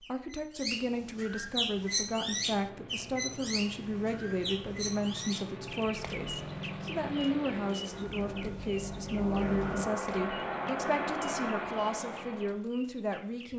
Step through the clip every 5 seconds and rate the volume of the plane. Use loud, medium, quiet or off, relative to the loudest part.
quiet, loud, loud.